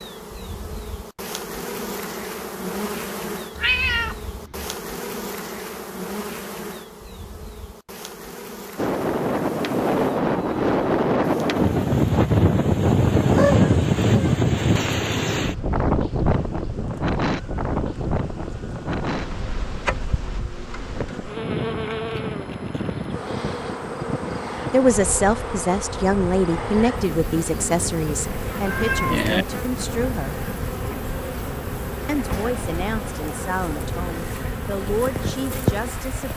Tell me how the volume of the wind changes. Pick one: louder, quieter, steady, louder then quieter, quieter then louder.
quieter.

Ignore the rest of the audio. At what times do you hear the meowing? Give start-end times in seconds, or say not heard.
3.5-4.8, 13.2-14.4, 28.6-29.4.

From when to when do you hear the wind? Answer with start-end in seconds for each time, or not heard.
8.8-36.3.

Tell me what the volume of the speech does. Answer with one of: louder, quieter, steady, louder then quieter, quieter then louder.
quieter.